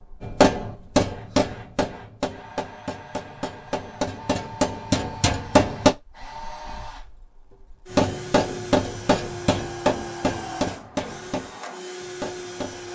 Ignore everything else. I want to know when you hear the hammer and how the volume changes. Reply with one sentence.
The hammer can be heard from 0.2 to 5.9 s, getting quieter then louder; and from 7.9 to 12.9 s, getting quieter.